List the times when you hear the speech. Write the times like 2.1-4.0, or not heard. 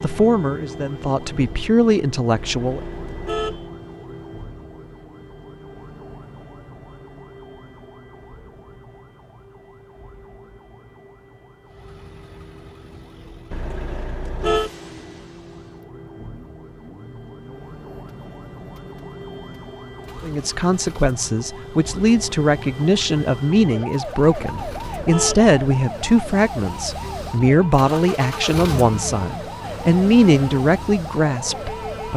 0.0-2.8, 20.2-32.1.